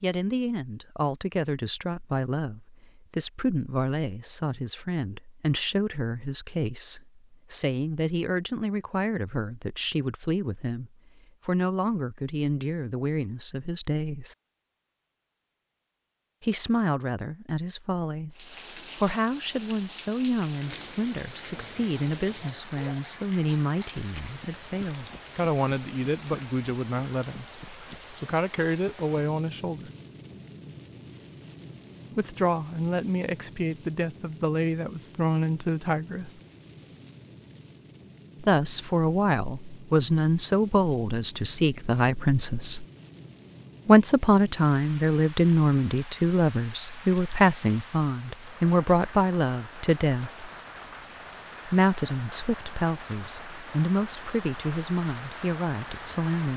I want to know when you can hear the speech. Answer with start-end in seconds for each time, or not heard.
0.0-14.3, 16.4-29.9, 32.1-36.3, 38.4-42.9, 43.9-50.5, 51.6-56.5.